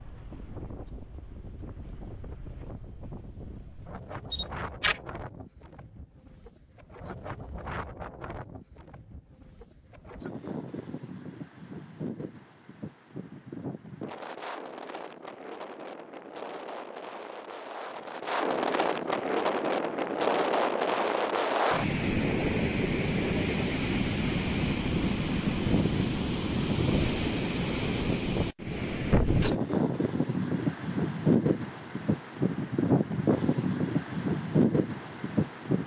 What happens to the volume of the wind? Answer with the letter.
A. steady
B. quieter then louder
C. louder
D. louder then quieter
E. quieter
C.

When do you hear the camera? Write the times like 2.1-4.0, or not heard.
4.3-5.0.